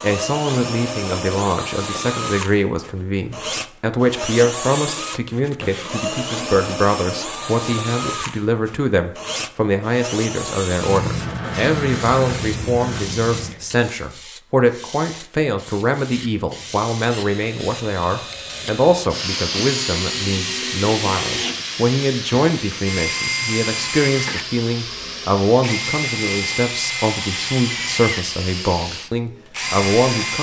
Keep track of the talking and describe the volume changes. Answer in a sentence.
The volume of the talking stays about the same.